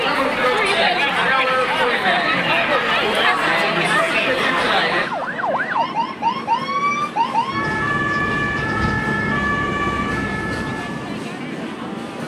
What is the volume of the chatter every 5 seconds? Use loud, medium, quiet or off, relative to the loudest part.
loud, quiet, quiet.